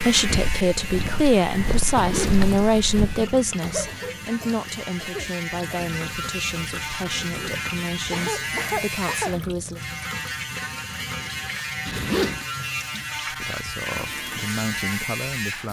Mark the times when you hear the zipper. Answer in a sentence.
You can hear the zipper from 1.9 to 2.6 s, from 7.2 to 8.8 s and from 11.8 to 12.4 s.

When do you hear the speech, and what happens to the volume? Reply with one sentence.
The speech can be heard from 0.0 to 9.8 s, getting quieter; and briefly from 13.3 to 15.6 s.